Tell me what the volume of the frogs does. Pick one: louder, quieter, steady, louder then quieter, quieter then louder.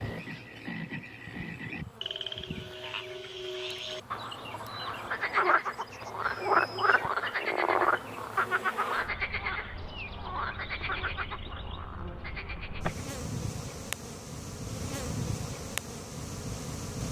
louder then quieter.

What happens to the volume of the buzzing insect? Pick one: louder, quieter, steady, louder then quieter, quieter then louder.
louder.